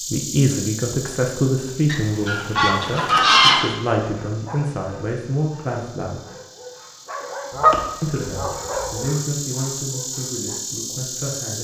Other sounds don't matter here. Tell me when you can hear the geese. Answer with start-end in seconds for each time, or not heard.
1.9-3.7, 7.5-9.0.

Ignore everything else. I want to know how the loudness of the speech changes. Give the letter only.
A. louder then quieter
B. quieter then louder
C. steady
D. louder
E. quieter
E.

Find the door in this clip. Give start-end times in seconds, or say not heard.
not heard.